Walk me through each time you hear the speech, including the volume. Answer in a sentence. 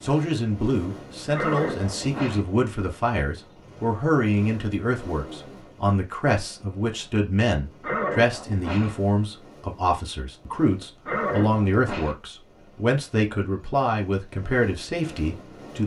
The speech can be heard from 0.0 to 15.8 s, at a steady volume.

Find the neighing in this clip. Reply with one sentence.
You can hear the neighing from 1.3 to 2.4 s, from 7.8 to 8.9 s and from 11.1 to 12.2 s.